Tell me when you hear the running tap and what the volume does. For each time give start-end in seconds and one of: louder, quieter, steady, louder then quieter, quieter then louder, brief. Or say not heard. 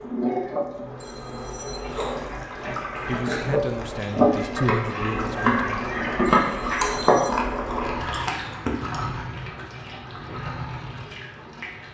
0.0-11.8 louder then quieter.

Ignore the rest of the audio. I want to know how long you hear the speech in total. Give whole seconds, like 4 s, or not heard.
3 s.